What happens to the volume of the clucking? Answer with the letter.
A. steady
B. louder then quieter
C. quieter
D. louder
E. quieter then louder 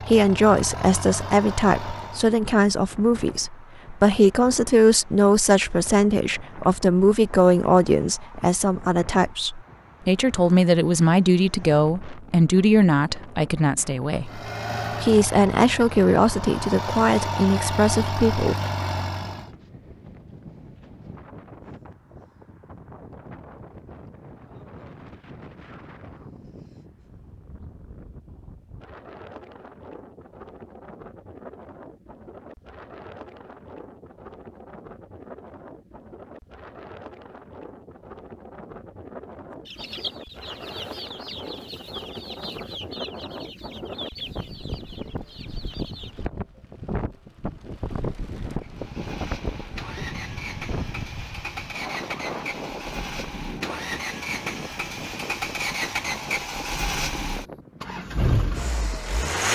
C.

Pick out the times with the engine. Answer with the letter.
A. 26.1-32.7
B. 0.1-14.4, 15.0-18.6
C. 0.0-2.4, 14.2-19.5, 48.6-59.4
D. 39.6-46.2
C.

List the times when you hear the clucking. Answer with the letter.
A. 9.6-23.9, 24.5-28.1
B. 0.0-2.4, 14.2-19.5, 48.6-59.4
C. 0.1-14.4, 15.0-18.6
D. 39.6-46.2
D.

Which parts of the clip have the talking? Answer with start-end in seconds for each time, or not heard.
0.1-14.4, 15.0-18.6.